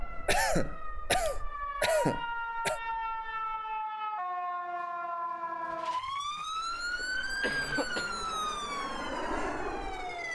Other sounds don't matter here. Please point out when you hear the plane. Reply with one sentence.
The plane can be heard from 0.0 to 3.9 s and from 6.5 to 10.2 s.